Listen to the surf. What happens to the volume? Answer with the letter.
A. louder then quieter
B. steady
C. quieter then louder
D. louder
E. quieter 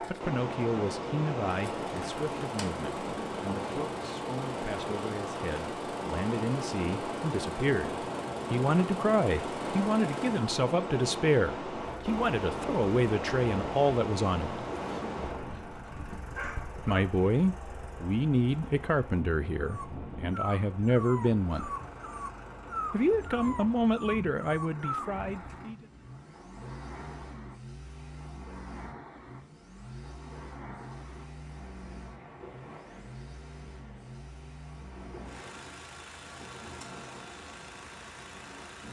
E.